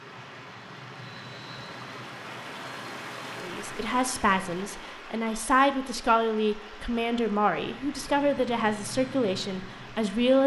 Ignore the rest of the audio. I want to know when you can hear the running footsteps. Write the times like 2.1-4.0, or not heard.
not heard.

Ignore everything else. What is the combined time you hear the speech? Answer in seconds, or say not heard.
7 s.